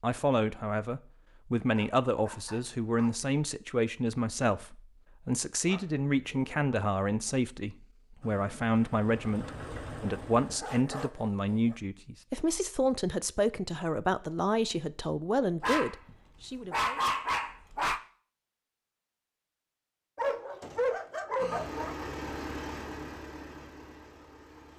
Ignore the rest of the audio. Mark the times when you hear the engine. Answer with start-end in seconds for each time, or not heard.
8.2-10.6, 21.4-24.7.